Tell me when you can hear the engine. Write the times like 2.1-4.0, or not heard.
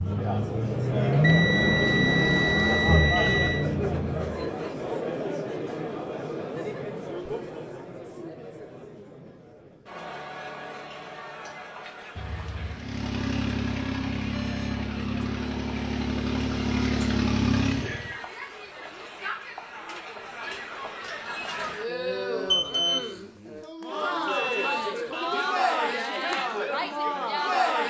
0.0-4.5, 12.7-18.1.